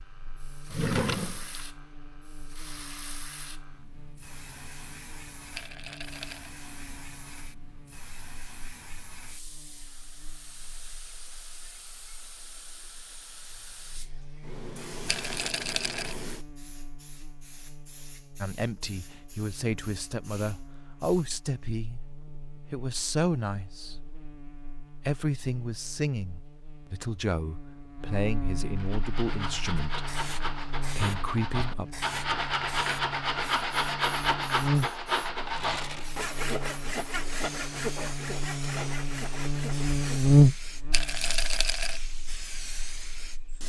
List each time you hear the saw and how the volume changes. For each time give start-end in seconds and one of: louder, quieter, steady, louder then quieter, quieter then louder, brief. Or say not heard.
28.7-40.4 louder then quieter.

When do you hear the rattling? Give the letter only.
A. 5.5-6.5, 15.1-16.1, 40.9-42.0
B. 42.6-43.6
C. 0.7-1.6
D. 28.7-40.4
A.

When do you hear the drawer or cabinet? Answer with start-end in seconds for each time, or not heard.
0.7-1.6.